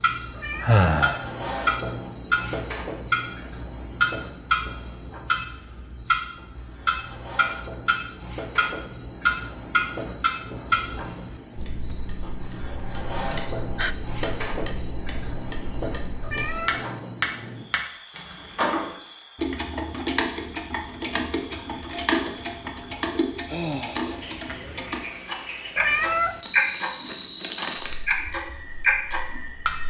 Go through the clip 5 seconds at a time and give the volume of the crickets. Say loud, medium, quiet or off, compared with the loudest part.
loud, medium, loud, loud, loud, loud.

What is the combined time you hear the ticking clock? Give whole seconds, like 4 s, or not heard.
30 s.